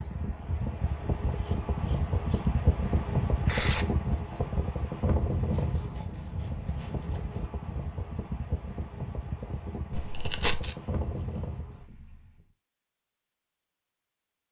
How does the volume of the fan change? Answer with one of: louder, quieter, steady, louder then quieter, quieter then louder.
quieter.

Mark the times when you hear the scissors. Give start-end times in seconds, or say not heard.
1.0-2.6, 5.5-7.5, 10.8-11.9.